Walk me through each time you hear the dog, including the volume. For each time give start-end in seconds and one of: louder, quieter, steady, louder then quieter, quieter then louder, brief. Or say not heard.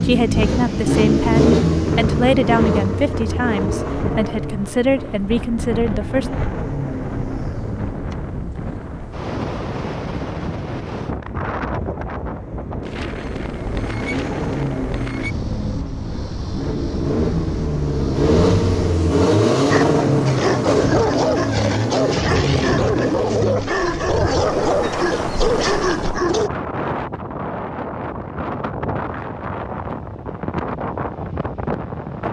19.7-26.5 steady.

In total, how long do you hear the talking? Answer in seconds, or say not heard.
6 s.